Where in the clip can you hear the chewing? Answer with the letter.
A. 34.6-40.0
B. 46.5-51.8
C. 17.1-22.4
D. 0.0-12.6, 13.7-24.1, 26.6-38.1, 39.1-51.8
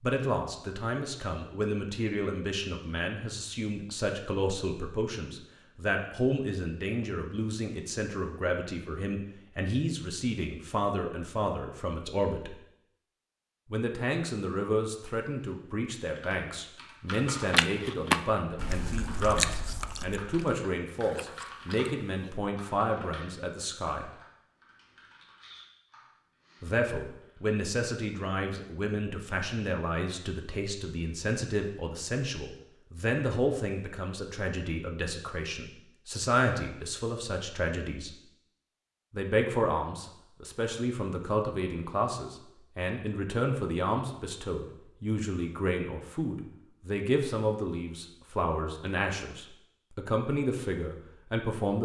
C.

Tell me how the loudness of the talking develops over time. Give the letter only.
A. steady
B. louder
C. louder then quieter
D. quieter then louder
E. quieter
A.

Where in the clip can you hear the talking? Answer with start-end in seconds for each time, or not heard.
0.0-12.6, 13.7-24.1, 26.6-38.1, 39.1-51.8.